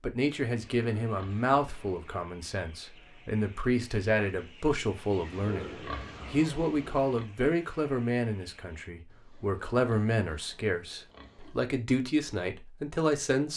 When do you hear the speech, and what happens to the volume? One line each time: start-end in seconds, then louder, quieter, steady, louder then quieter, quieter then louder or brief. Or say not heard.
0.0-13.5 steady.